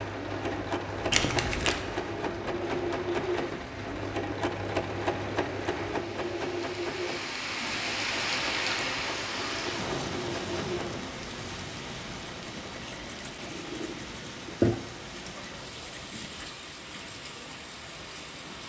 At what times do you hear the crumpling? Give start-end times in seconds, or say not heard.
1.1-1.8.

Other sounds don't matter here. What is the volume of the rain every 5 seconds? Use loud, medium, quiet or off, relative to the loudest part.
medium, loud, medium, medium.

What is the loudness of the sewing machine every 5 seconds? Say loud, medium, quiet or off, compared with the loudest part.
loud, loud, loud, quiet.